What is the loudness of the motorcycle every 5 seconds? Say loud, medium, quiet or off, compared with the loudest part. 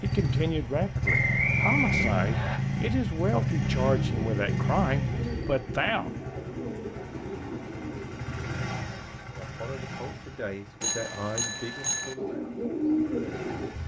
loud, medium, quiet.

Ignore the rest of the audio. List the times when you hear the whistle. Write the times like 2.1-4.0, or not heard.
1.1-2.6.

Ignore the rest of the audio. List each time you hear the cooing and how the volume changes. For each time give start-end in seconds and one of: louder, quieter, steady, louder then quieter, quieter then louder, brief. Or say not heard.
4.0-8.7 steady
12.2-13.7 brief.